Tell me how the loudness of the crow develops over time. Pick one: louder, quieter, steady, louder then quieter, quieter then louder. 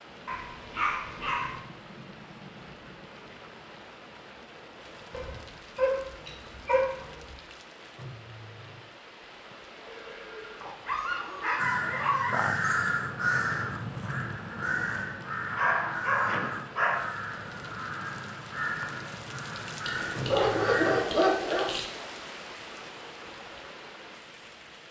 quieter.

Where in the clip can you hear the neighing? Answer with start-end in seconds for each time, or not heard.
9.8-11.1.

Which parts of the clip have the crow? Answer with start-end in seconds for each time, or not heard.
11.6-21.1.